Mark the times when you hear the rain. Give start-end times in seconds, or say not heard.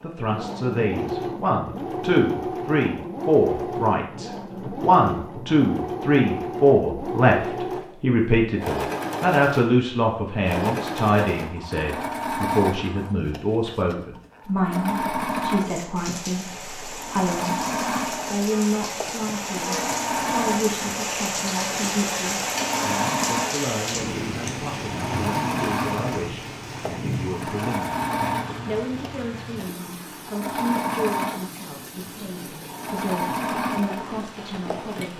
15.6-35.1.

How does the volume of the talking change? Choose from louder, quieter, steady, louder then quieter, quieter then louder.
quieter.